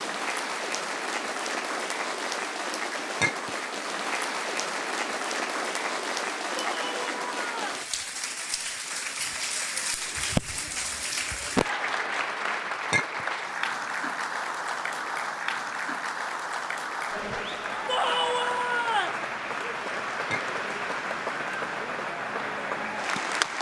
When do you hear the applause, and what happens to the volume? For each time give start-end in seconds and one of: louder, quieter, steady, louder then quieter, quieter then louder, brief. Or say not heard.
0.0-23.5 steady.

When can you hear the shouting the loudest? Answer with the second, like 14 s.
18 s.